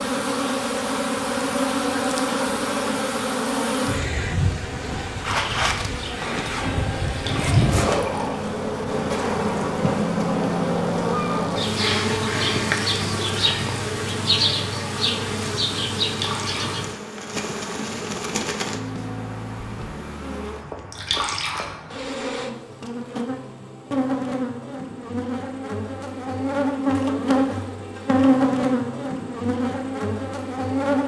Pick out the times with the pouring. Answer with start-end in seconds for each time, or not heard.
7.0-8.4, 16.0-16.8, 20.9-21.8.